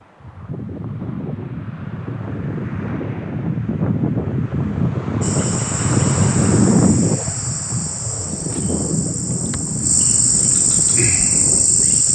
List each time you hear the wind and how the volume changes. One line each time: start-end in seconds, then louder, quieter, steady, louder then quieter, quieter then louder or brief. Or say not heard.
0.0-12.1 louder then quieter.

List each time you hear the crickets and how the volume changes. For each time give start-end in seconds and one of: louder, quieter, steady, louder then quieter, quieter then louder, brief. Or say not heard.
5.2-12.1 louder.